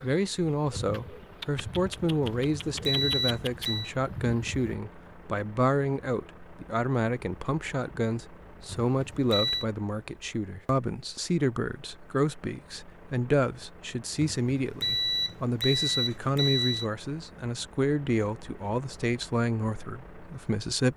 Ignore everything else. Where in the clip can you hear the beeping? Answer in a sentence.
The beeping can be heard from 2.2 to 3.9 s, from 8.7 to 9.7 s and from 14.2 to 16.9 s.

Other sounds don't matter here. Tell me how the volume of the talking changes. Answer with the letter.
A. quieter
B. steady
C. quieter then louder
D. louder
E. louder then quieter
B.